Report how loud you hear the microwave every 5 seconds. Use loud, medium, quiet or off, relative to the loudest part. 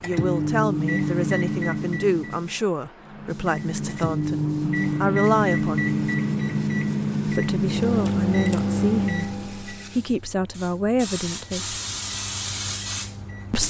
loud, loud, quiet.